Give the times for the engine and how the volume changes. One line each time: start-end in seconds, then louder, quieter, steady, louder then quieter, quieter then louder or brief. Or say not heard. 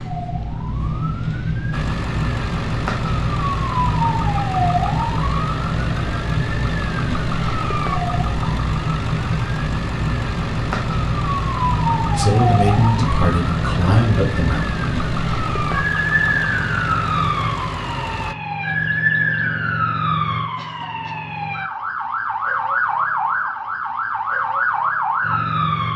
1.7-18.4 steady.